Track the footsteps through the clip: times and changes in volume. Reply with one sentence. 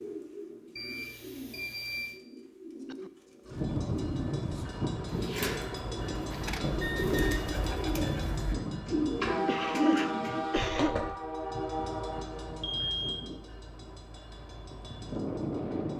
You can't hear the footsteps here.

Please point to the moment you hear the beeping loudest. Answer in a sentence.
The volume of the beeping peaks at 13 seconds.